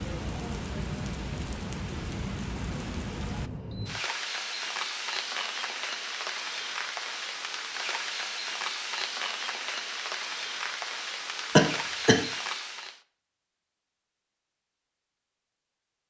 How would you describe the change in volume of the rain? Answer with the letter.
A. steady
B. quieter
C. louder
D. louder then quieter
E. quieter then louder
A.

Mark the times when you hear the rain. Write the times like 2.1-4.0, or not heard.
0.0-13.0.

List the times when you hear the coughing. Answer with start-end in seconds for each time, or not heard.
11.6-12.2.